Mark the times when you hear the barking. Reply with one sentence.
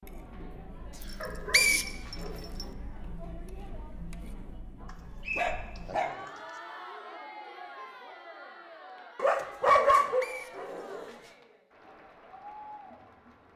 You can hear the barking from 1.2 to 2.8 s, from 4.8 to 6.3 s and from 9.2 to 11.2 s.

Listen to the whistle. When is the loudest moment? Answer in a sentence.
The volume of the whistle peaks at 2 seconds.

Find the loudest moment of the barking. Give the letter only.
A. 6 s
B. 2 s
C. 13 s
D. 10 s
D.